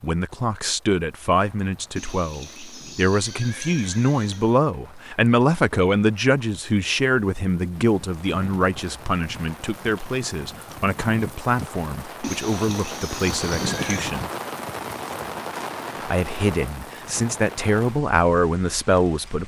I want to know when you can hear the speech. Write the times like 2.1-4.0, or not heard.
0.0-14.3, 16.0-19.4.